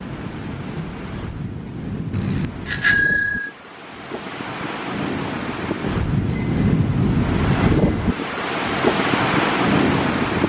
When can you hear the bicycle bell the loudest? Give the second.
3 s.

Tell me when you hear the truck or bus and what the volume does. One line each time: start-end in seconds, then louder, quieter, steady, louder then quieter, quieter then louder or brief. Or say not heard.
not heard.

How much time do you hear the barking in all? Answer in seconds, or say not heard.
not heard.